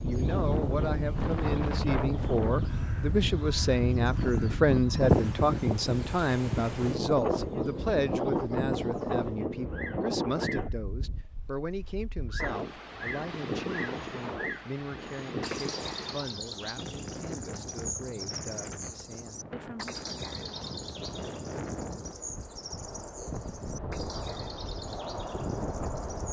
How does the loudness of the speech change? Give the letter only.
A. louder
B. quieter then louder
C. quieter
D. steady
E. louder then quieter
C.